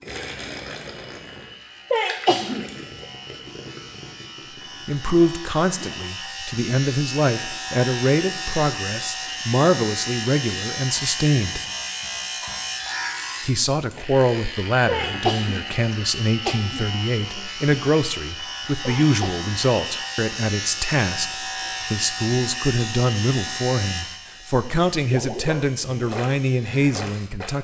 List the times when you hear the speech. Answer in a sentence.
You can hear the speech from 4.8 to 11.6 s and from 13.4 to 27.5 s.